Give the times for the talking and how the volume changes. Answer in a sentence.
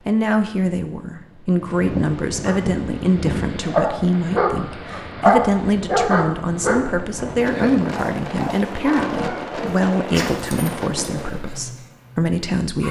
The talking can be heard from 0.1 to 12.8 s, at a steady volume.